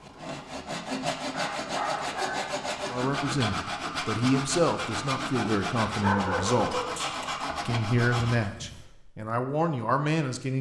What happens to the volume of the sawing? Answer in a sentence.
The volume of the sawing stays about the same.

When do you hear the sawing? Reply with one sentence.
You can hear the sawing from 0.0 to 8.5 s.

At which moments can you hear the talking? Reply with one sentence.
The talking can be heard from 2.9 to 6.8 s and from 7.7 to 10.5 s.